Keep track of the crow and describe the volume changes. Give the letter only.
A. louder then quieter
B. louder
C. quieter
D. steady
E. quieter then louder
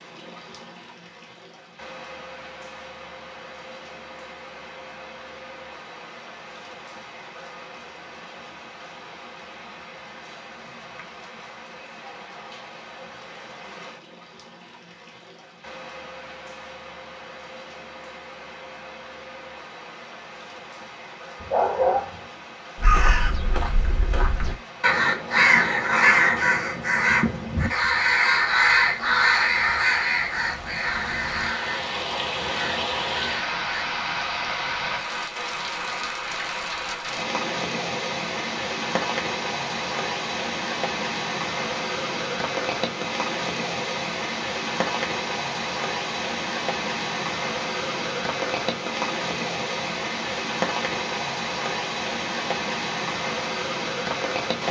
A.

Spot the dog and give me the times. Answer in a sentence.
You can hear the dog from 21.4 to 22.2 s.